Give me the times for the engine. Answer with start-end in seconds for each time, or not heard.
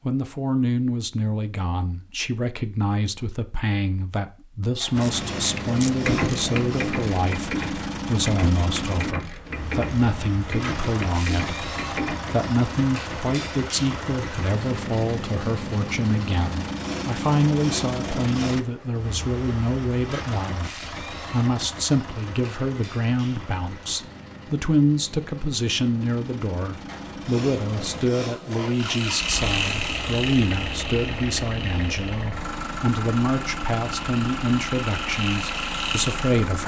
4.9-36.6.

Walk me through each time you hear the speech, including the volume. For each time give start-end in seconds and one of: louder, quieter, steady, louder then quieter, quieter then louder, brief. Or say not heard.
0.1-36.6 steady.